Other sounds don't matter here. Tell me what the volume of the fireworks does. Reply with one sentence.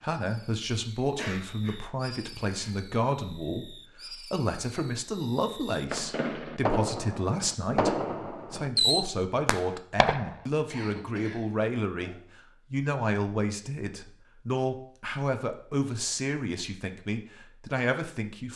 The loudness of the fireworks goes up.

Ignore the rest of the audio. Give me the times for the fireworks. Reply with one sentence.
You can hear the fireworks from 0.1 to 10.3 s.